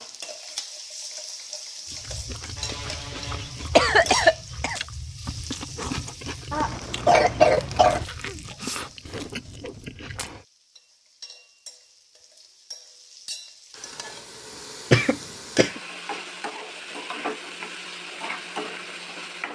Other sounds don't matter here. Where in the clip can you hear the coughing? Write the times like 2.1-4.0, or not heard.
2.6-4.8, 6.5-8.1, 14.9-15.8.